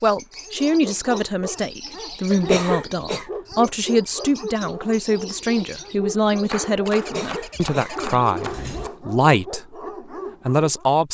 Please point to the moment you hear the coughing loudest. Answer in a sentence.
The loudest moment of the coughing is at 3 seconds.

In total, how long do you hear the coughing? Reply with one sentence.
The coughing can be heard for 3 seconds in total.